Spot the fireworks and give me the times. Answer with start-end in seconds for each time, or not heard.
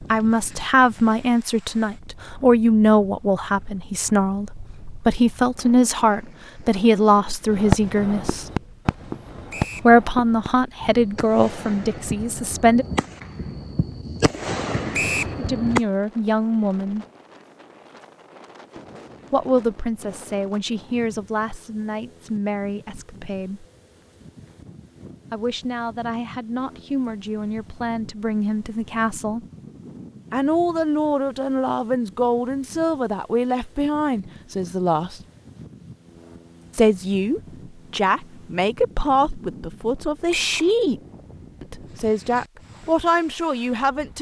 7.5-15.8.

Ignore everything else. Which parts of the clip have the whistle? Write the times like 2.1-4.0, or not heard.
9.5-9.9, 14.9-15.3, 40.3-40.8.